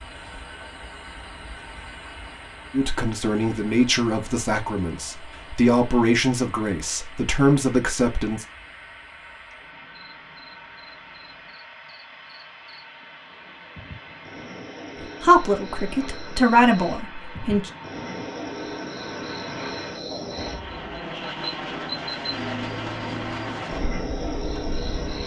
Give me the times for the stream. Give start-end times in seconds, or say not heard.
not heard.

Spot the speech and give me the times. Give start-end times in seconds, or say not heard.
2.7-8.4, 15.0-17.7.